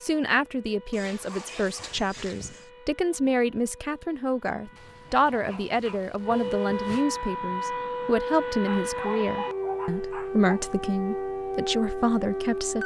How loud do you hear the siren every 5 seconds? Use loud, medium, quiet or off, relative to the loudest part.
quiet, loud, loud.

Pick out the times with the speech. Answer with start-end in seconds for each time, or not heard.
0.0-12.8.